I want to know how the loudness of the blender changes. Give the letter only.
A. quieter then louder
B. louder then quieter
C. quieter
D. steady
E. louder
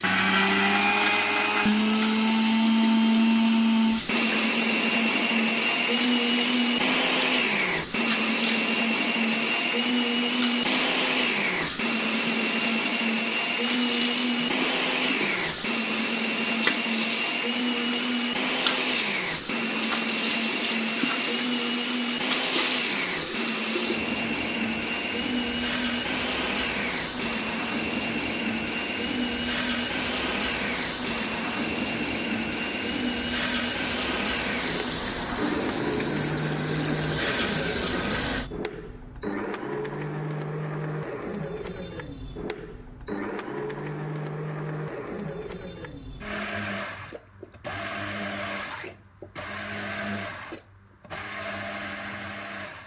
C.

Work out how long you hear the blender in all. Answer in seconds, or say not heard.
53 s.